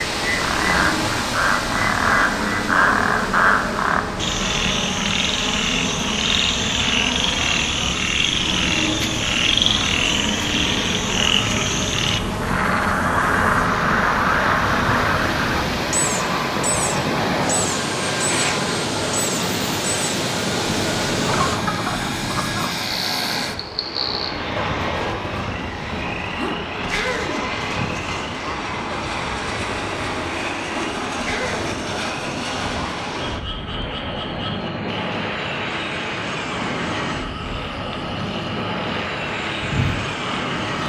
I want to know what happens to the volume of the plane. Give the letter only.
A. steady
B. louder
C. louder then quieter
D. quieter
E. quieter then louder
A.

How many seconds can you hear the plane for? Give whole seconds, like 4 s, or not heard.
41 s.